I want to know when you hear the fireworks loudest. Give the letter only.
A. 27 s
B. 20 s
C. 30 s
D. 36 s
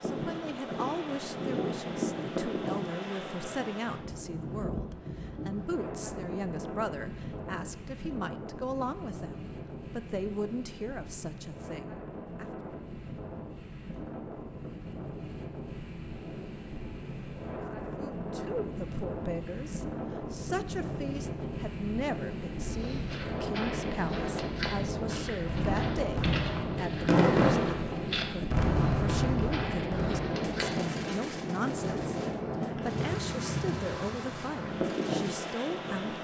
A.